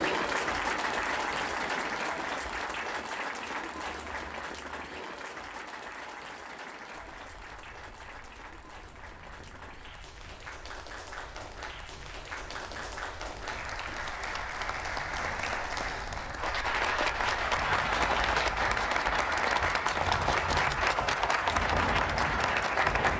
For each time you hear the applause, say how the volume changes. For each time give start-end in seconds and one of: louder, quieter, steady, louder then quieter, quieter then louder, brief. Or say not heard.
0.0-23.1 quieter then louder.